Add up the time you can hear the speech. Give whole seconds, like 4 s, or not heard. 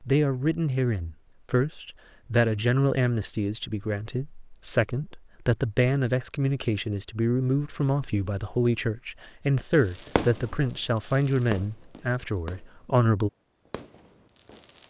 13 s.